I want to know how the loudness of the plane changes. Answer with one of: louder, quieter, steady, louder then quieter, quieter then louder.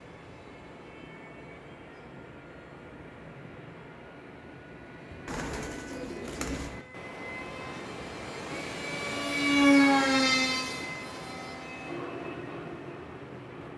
louder then quieter.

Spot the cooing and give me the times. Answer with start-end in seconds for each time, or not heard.
5.2-6.8.